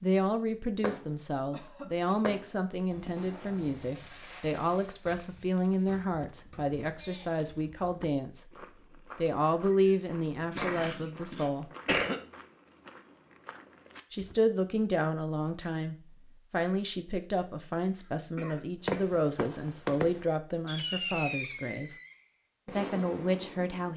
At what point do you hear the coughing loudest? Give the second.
12 s.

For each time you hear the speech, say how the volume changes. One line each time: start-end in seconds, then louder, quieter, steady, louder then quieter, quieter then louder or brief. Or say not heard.
0.0-8.5 steady
9.2-11.7 brief
14.1-21.9 steady
22.8-23.9 brief.